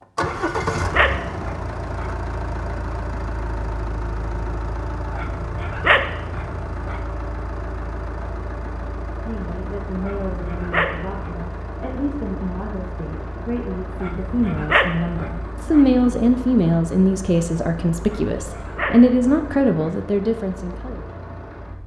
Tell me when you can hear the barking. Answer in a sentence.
You can hear the barking from 0.2 to 2.1 s, from 5.2 to 7.0 s, from 10.0 to 11.3 s, from 14.0 to 15.8 s and from 18.1 to 19.9 s.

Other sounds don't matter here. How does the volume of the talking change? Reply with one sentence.
The volume of the talking goes up.